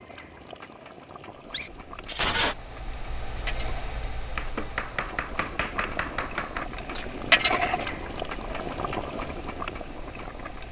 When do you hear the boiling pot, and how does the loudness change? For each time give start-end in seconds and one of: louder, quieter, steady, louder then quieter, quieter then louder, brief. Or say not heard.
0.0-10.6 louder then quieter.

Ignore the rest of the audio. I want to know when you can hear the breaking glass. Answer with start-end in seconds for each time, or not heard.
1.5-2.5.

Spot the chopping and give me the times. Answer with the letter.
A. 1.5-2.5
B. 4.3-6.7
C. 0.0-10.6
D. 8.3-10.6
B.